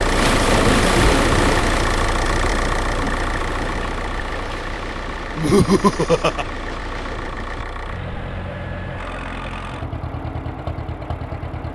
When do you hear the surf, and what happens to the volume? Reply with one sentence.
You can hear the surf from 0.0 to 7.7 s, getting quieter.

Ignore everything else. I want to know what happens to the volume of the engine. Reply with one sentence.
The loudness of the engine goes down.